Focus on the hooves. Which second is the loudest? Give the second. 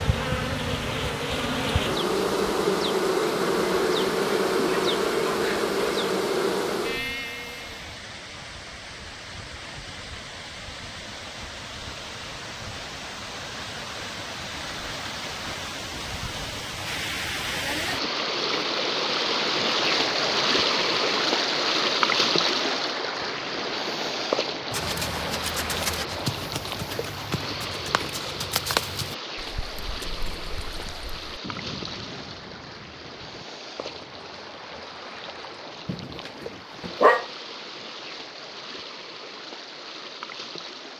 29 s.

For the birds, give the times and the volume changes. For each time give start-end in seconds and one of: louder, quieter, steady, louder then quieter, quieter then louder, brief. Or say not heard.
not heard.